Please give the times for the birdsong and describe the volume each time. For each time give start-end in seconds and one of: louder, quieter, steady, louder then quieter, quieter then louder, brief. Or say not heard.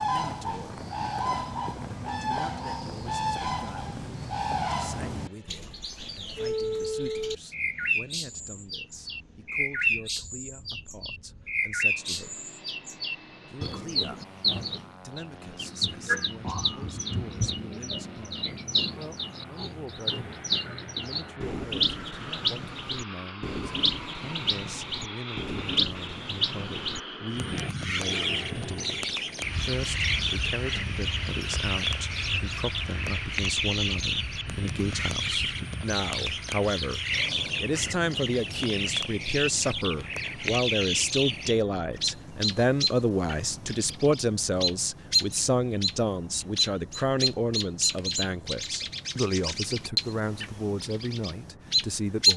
0.0-52.3 steady.